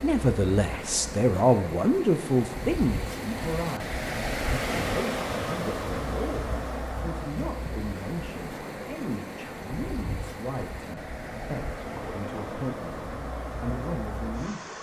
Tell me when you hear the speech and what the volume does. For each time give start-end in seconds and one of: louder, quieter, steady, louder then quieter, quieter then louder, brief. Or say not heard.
0.0-14.7 quieter.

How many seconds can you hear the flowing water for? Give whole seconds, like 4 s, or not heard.
15 s.